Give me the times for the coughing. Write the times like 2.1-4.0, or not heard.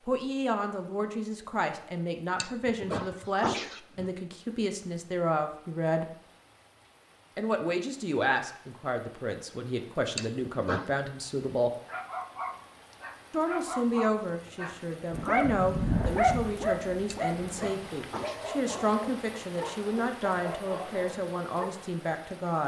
2.4-4.1, 10.2-10.9, 17.1-18.8.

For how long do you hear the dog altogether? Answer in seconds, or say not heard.
10 s.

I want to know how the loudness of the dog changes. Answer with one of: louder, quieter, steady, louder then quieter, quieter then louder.
louder then quieter.